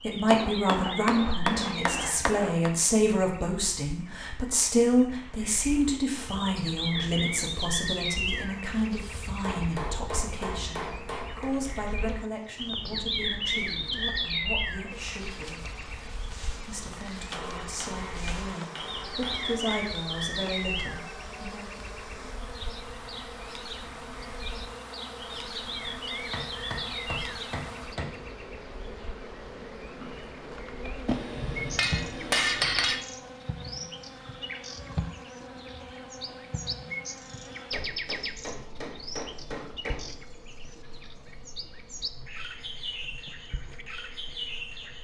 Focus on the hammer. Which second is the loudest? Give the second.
32 s.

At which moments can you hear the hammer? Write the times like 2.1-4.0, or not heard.
0.3-2.7, 9.4-11.6, 17.3-19.8, 26.3-28.1, 31.1-33.0, 37.7-40.1.